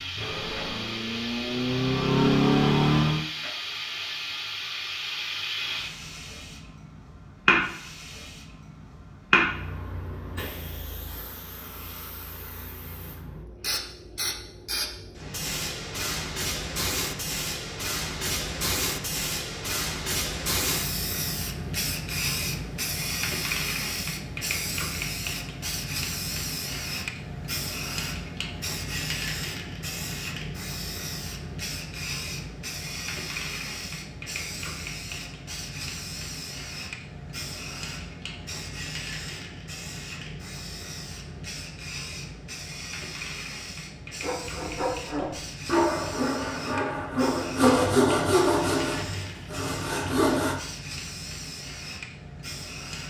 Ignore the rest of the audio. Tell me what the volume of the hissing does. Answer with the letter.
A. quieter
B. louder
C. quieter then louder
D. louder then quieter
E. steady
A.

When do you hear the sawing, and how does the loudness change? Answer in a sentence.
The sawing can be heard from 44.2 to 50.6 s, getting louder then quieter.